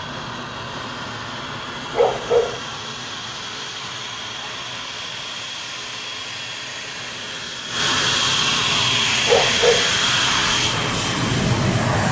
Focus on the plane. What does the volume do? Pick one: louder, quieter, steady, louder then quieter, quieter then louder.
louder.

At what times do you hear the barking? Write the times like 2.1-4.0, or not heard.
1.9-2.6, 9.2-9.9.